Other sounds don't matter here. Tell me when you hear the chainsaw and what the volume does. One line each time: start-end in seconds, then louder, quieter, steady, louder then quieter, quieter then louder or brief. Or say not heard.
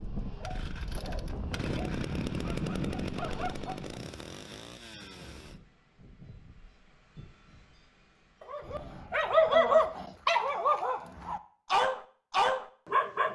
0.0-5.6 louder then quieter.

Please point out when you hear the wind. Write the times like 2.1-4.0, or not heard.
0.0-9.9.